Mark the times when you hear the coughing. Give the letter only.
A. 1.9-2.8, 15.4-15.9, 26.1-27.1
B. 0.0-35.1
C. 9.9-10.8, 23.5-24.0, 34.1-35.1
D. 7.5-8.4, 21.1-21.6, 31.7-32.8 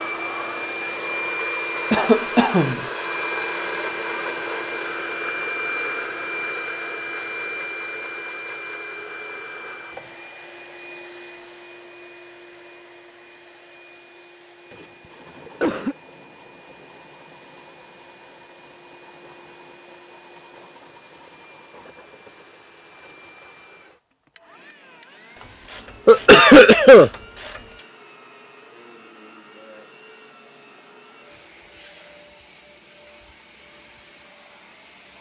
A.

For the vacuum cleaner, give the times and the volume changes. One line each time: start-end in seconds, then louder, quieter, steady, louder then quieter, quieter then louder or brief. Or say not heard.
0.0-35.1 quieter.